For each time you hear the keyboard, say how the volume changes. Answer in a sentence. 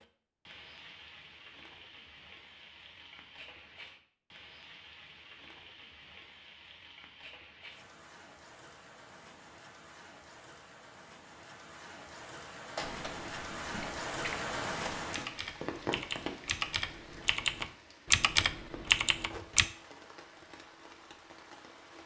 You can hear the keyboard from 12.8 to 19.6 s, getting louder.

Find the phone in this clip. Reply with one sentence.
The phone can't be heard in this clip.